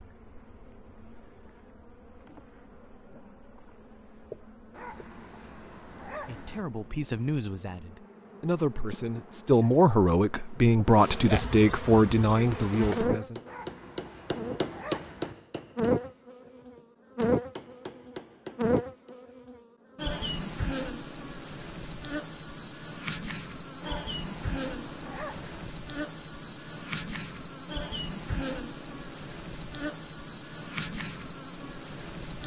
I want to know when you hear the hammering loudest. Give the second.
15 s.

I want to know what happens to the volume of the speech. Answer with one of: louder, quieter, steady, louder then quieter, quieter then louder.
louder.